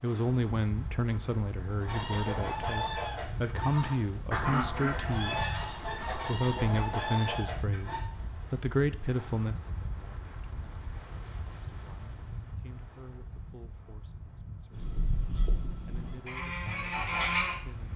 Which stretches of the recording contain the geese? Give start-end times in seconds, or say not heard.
1.8-8.1, 14.7-17.6.